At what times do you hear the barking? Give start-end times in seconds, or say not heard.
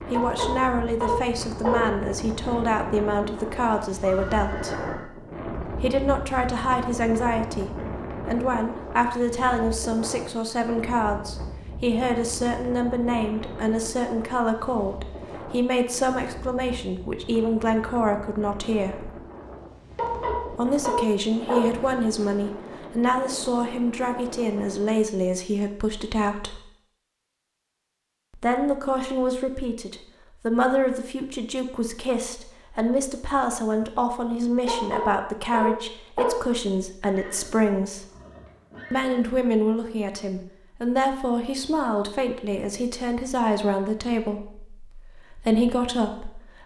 0.1-1.9, 19.9-21.8, 34.6-36.4.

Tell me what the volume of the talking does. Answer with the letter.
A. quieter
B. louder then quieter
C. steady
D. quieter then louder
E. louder
C.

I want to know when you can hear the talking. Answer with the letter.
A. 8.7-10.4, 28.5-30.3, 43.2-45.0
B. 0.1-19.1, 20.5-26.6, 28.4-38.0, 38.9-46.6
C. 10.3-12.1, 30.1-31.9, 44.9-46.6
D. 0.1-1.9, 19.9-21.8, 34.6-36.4
B.